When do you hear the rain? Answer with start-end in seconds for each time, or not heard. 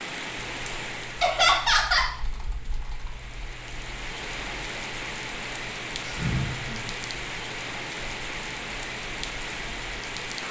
0.0-10.4.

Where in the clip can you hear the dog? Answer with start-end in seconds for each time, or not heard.
not heard.